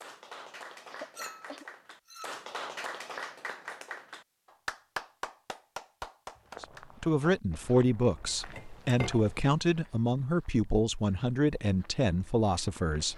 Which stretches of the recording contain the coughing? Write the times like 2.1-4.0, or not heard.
0.9-1.6.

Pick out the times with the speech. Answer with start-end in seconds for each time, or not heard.
6.6-13.1.